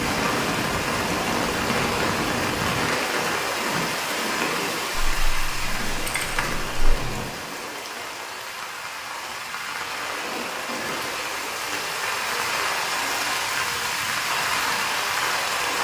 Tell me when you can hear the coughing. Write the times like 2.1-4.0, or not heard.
not heard.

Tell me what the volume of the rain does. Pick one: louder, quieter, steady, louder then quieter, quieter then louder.
quieter then louder.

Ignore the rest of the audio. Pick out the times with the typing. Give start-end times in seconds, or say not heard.
5.0-7.0.